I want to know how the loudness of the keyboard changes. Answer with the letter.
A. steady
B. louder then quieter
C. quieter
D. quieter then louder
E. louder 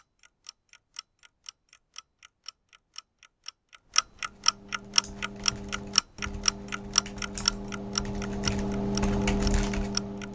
E.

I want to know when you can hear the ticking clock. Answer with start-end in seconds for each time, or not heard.
0.0-10.2.